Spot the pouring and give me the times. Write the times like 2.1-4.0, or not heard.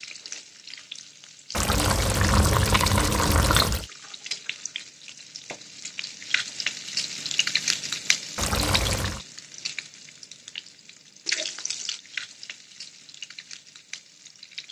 1.5-3.9, 8.3-9.2.